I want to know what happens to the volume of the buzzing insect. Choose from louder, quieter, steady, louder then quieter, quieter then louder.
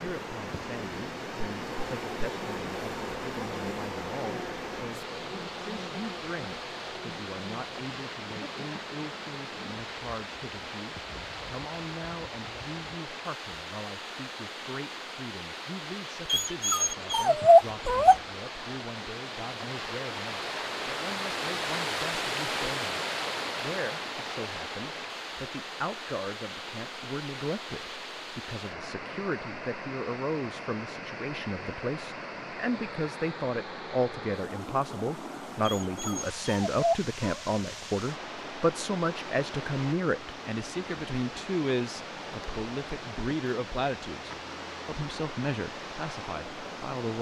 quieter.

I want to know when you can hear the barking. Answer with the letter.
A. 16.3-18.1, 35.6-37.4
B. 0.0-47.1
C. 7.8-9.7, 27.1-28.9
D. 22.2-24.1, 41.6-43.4
A.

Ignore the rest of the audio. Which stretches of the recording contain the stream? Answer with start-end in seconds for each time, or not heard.
0.0-47.1.